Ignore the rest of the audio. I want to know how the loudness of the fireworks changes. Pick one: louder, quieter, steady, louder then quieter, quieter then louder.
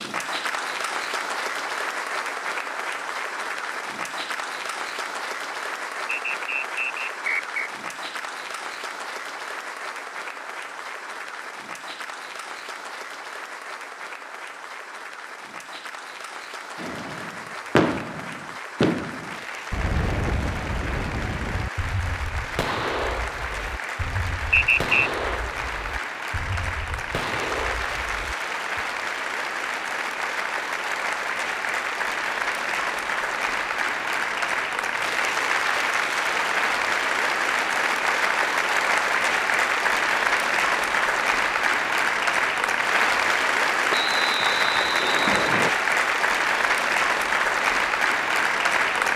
quieter.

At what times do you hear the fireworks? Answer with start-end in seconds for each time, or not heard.
16.8-28.9.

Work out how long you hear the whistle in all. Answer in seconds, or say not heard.
4 s.